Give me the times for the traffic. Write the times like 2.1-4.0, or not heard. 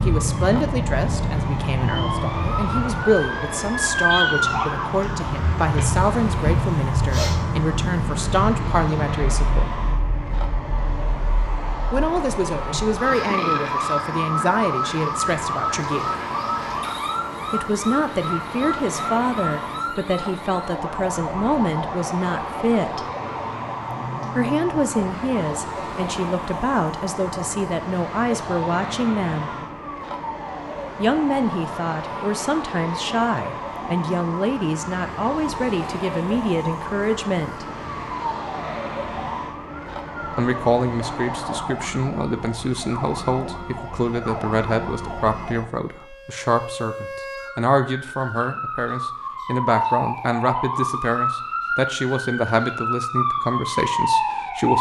0.0-41.6.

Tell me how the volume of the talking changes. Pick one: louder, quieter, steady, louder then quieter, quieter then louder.
steady.